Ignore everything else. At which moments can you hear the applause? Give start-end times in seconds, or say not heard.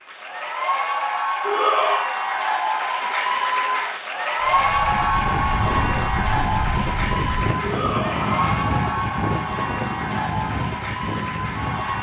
0.0-11.9.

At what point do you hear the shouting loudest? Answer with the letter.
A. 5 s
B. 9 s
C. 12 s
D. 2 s
D.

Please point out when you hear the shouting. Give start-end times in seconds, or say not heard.
1.4-2.1, 7.6-8.7.